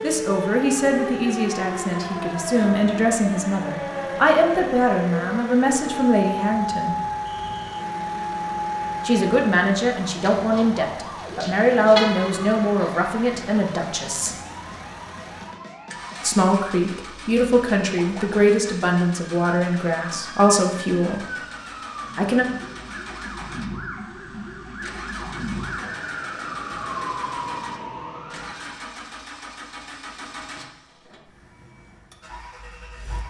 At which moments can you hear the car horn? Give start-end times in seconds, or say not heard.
11.9-12.6.